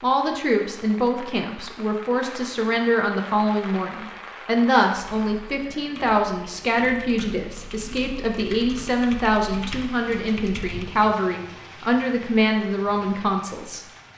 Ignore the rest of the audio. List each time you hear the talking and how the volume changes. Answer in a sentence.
You can hear the talking from 0.0 to 13.8 s, at a steady volume.